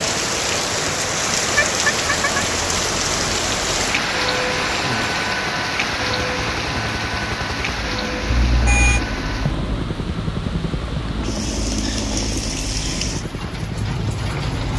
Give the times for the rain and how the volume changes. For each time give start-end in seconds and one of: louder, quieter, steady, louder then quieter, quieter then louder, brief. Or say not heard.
0.0-14.7 quieter.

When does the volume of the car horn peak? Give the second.
9 s.